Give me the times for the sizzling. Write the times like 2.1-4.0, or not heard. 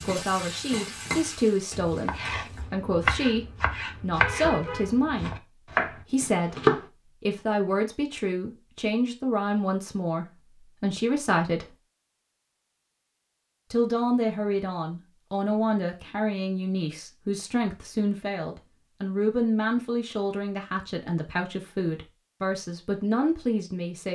0.0-2.6.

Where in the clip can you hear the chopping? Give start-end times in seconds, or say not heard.
1.7-6.8.